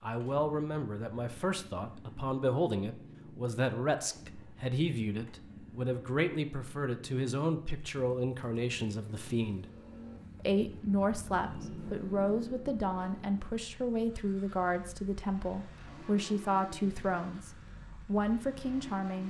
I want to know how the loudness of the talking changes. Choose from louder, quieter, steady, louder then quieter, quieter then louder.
steady.